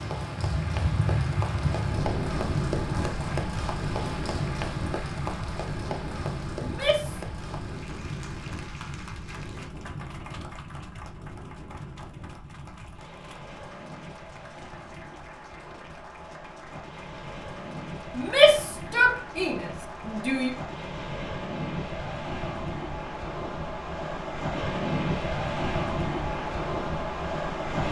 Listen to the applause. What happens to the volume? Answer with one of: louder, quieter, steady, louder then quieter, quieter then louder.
quieter.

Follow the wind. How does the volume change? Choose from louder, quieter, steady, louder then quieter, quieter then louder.
quieter then louder.